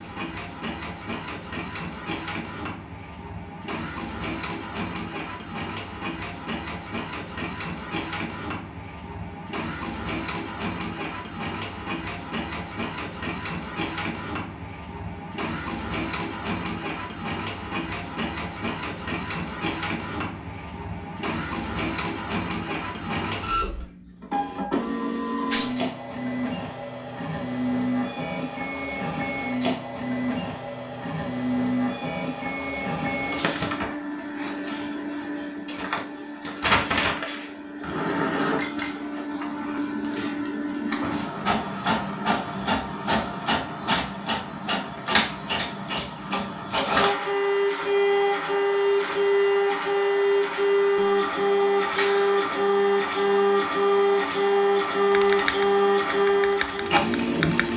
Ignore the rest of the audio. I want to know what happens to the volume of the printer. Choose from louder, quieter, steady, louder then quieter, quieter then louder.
louder.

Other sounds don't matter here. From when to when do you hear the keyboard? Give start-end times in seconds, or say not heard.
55.1-57.7.